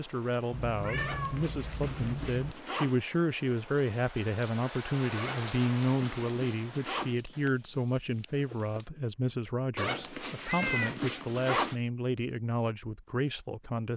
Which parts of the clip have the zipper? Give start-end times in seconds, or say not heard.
0.9-3.0, 5.2-7.2, 9.8-11.8.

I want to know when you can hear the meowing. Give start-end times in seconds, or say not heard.
0.5-2.5, 10.0-11.0.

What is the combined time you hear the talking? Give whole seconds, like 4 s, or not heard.
14 s.